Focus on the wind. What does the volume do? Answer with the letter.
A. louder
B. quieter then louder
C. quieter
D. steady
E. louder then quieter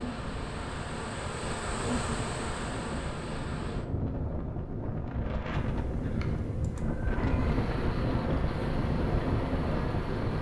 A.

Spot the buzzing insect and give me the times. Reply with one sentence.
The buzzing insect can be heard from 0.0 to 10.3 s.